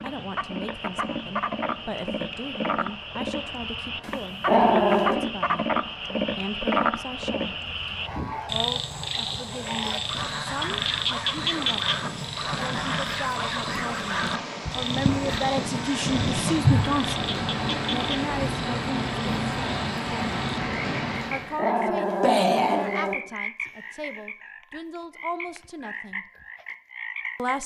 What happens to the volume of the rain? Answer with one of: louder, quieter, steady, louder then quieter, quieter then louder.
louder.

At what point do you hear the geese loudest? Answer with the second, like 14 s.
17 s.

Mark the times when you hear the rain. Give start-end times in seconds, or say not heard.
0.0-21.6.